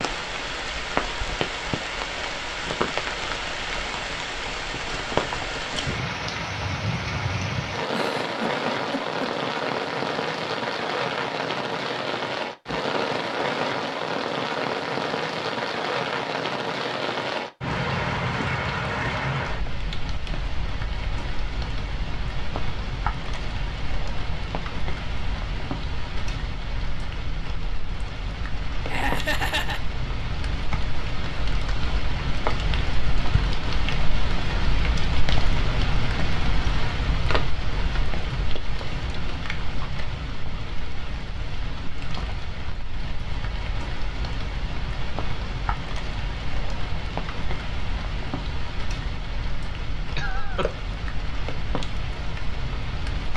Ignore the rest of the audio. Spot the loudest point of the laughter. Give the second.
29 s.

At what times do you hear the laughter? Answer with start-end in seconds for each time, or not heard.
7.9-9.3, 28.9-29.8, 50.1-50.7.